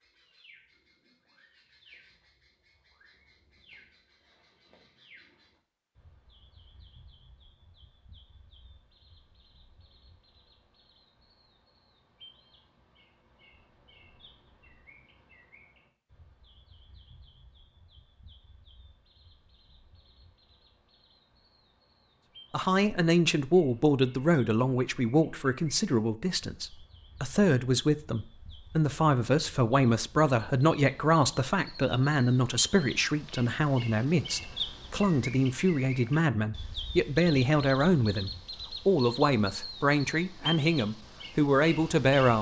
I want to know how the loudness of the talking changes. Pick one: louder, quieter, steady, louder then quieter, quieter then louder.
steady.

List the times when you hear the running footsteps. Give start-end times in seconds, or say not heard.
not heard.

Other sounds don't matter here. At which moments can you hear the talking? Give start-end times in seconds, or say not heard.
22.5-42.3.